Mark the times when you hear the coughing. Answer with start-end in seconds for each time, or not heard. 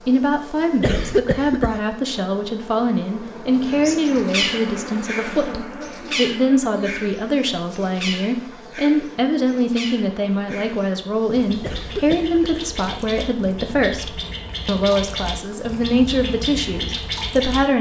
0.8-1.8, 11.6-12.3.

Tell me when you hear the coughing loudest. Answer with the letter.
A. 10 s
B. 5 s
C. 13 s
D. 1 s
D.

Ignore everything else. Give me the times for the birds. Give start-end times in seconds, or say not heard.
3.6-17.6.